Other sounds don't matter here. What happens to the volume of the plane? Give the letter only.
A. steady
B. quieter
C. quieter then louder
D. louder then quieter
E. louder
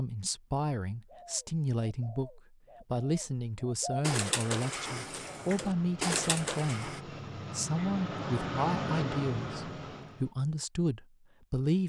E.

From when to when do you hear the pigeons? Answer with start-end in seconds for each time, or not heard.
1.1-7.0.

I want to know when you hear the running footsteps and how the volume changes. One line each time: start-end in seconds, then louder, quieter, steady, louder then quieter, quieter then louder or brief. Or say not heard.
not heard.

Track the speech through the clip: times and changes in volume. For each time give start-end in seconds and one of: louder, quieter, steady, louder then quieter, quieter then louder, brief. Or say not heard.
0.0-11.8 steady.